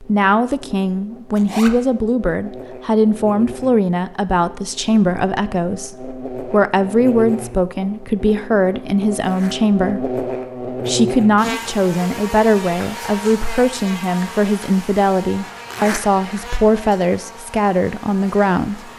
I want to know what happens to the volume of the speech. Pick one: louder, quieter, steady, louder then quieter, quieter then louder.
steady.